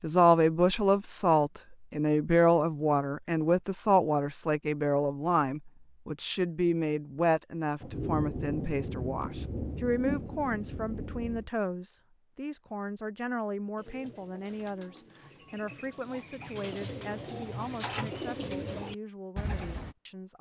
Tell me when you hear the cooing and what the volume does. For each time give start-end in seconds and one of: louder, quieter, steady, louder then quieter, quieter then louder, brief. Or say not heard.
13.8-19.9 louder.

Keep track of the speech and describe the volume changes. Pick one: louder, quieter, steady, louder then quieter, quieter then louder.
quieter.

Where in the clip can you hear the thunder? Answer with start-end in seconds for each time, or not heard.
7.8-11.5.